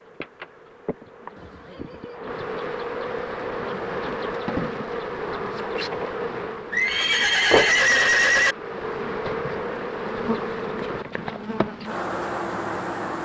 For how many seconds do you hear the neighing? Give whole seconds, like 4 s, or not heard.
3 s.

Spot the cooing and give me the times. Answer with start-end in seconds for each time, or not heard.
not heard.